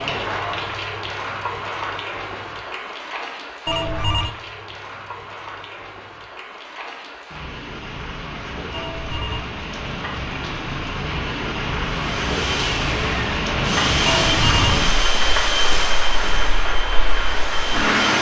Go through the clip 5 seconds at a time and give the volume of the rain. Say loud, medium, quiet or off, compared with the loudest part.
medium, medium, loud, loud.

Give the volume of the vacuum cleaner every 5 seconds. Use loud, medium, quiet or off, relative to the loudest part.
off, off, loud, loud.